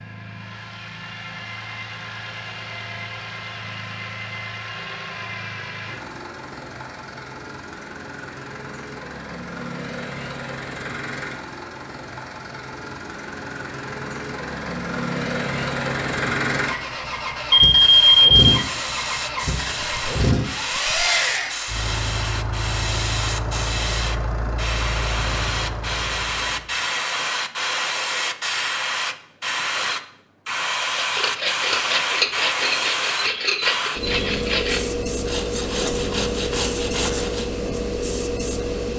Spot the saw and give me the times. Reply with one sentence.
The saw can be heard from 30.9 to 37.5 s.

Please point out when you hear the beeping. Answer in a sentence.
You can hear the beeping from 17.5 to 18.6 s.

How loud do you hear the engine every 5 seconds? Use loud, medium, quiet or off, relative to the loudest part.
medium, medium, medium, loud, loud, medium, off, off.